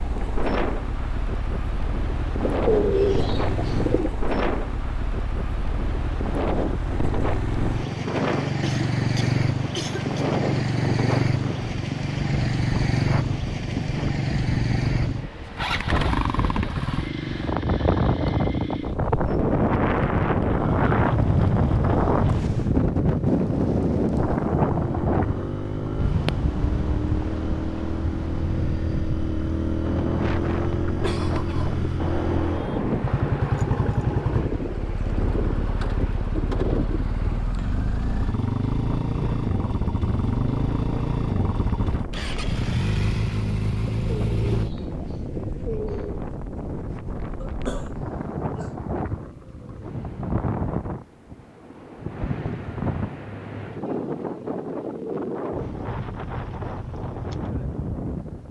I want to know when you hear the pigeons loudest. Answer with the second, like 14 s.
3 s.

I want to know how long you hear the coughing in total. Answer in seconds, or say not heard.
4 s.